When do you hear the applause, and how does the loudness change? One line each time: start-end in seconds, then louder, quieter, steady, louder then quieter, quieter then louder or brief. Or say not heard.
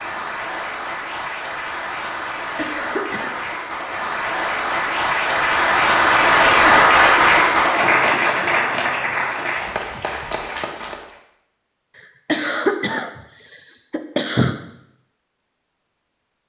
0.0-11.2 louder then quieter.